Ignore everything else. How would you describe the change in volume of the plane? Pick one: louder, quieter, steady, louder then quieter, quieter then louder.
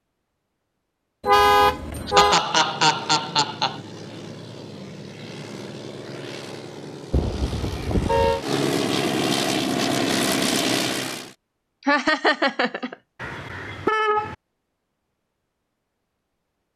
louder.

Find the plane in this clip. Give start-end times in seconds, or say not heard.
2.2-11.3.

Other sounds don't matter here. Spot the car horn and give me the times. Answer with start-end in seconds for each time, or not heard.
1.2-2.5, 7.1-8.4, 13.2-14.3.